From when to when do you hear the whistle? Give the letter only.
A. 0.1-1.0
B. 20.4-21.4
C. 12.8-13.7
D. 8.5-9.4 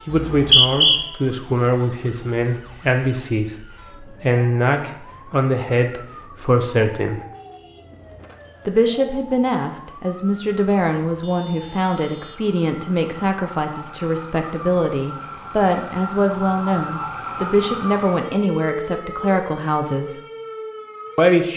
A.